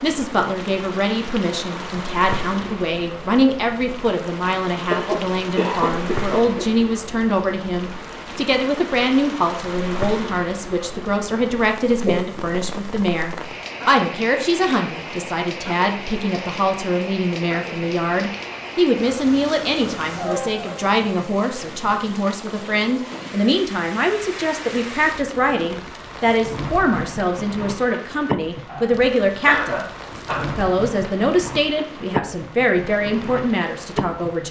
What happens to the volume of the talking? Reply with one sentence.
The loudness of the talking stays about the same.